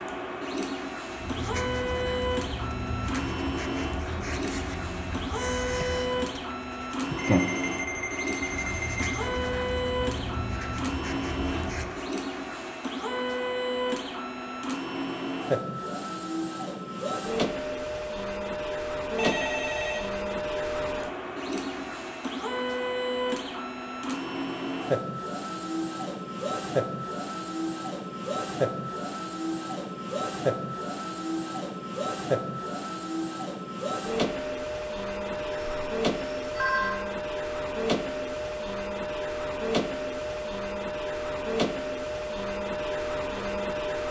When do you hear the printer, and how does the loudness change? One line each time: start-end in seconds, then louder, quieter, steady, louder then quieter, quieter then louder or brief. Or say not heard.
0.0-44.0 steady.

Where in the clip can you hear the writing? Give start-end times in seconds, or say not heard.
1.1-12.1.